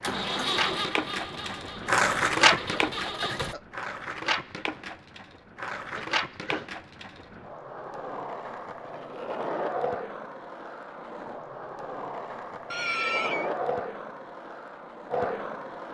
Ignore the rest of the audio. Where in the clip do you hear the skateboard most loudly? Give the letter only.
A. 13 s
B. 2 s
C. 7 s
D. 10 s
B.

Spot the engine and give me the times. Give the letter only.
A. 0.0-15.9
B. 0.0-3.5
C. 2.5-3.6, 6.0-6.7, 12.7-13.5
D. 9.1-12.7
B.